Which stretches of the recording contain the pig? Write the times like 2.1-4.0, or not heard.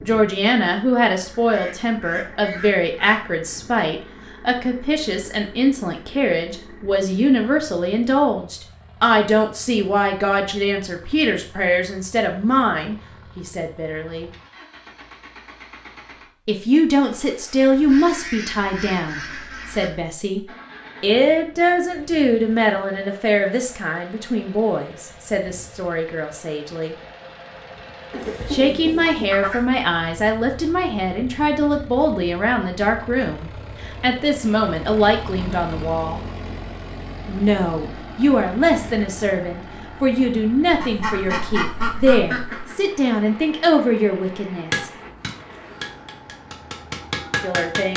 not heard.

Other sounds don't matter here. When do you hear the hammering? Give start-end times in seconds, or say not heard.
44.6-47.9.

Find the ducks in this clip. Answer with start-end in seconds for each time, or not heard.
1.4-3.2, 17.9-19.9, 28.1-29.6, 40.7-42.8.